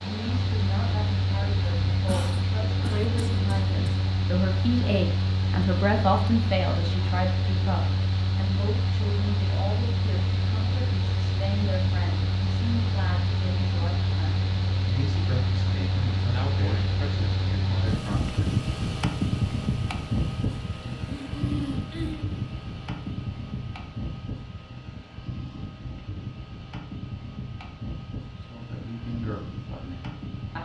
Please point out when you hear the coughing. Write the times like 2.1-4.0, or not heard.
2.0-4.0, 16.3-17.1, 21.0-22.2.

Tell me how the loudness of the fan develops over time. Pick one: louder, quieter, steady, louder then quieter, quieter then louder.
quieter.